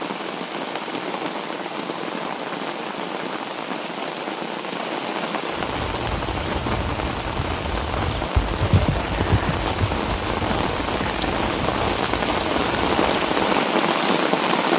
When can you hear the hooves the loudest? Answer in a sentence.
The volume of the hooves peaks at 9 seconds.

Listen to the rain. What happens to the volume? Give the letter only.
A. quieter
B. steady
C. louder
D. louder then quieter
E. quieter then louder
C.